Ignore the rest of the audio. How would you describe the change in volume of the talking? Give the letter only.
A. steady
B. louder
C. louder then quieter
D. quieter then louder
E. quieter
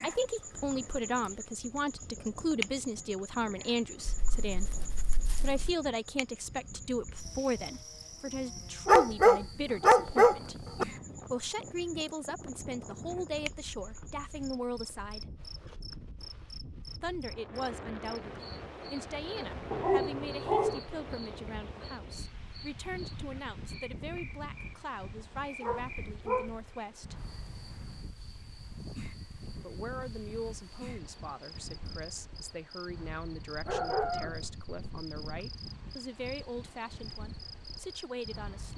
E.